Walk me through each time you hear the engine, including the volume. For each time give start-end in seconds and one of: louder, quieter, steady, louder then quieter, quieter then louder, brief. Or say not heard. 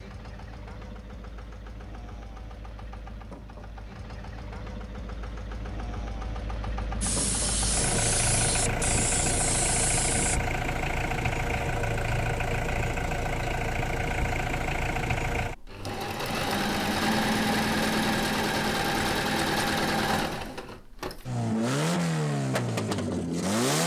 0.0-23.8 louder.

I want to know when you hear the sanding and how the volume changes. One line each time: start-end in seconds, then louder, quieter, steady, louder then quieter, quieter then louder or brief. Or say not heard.
not heard.